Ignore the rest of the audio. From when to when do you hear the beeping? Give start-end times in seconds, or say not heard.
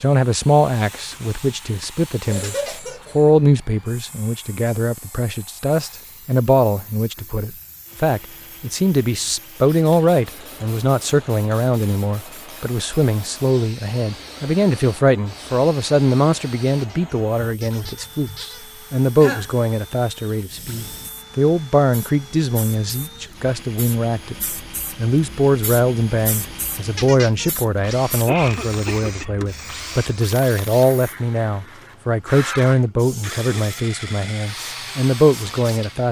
not heard.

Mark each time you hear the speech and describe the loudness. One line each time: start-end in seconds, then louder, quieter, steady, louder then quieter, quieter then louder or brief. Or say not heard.
0.0-36.0 steady.